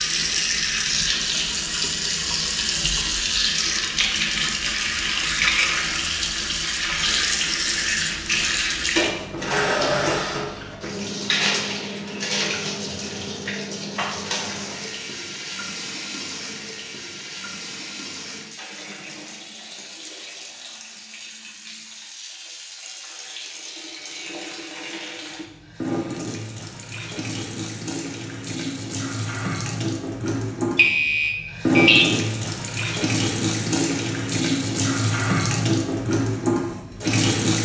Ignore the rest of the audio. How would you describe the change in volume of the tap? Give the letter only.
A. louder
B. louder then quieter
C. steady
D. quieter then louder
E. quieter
D.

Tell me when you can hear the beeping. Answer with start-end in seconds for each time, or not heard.
30.8-32.0.